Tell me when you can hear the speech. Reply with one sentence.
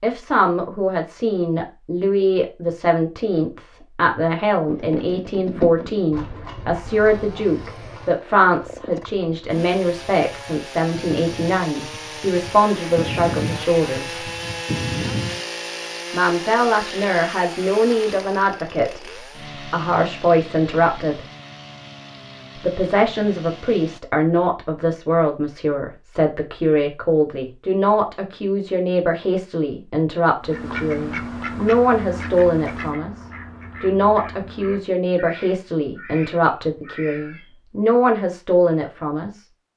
You can hear the speech from 0.0 to 14.2 s, from 16.1 to 21.2 s and from 22.6 to 39.5 s.